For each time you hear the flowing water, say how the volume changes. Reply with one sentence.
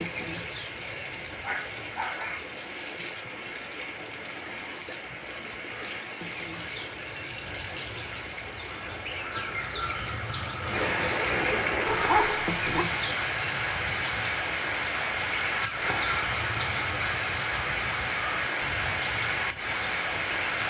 The flowing water can be heard from 0.0 to 20.6 s, getting louder.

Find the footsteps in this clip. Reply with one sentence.
The footsteps can't be heard in this clip.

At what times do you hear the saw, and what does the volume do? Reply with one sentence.
You can't hear the saw here.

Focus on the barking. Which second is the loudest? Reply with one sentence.
The volume of the barking peaks at 12 seconds.